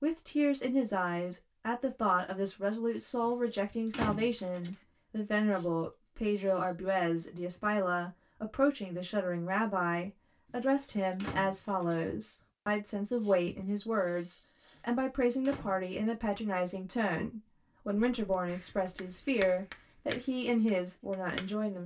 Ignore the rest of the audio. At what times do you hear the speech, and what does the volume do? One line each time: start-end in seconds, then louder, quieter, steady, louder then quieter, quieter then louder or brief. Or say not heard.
0.0-21.8 steady.